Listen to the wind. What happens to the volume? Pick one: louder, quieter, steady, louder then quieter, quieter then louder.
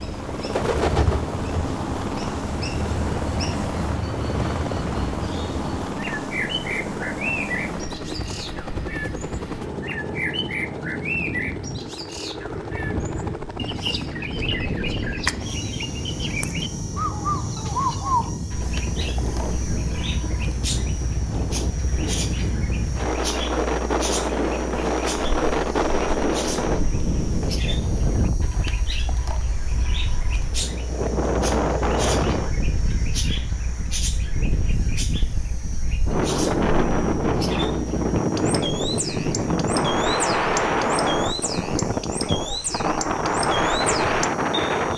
louder.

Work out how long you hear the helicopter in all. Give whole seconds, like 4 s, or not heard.
45 s.